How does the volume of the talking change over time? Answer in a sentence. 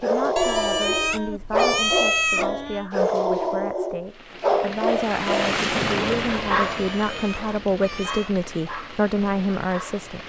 The volume of the talking goes up.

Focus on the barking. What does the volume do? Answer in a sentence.
The volume of the barking goes down.